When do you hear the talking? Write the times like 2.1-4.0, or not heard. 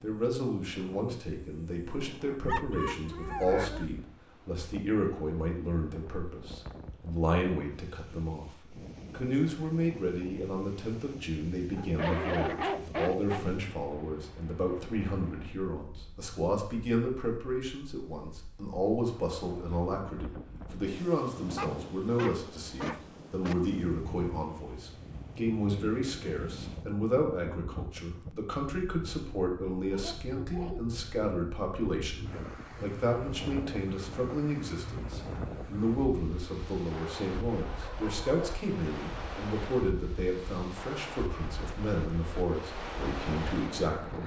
0.0-44.2.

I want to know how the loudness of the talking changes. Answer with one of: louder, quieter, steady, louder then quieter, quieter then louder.
steady.